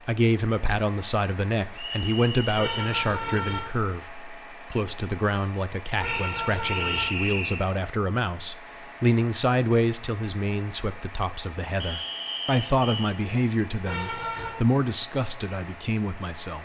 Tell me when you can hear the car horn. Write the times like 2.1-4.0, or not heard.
2.5-3.6, 6.0-7.0, 13.8-14.6.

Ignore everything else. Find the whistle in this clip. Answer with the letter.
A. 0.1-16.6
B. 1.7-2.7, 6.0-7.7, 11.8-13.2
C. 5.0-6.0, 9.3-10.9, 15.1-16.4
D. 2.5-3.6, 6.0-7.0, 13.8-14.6
B.